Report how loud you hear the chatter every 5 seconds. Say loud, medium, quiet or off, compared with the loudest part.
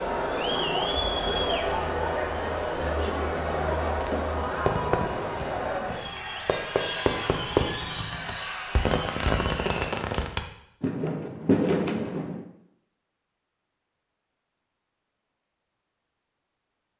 loud, medium, off, off.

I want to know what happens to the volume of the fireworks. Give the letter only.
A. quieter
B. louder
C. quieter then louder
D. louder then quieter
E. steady
B.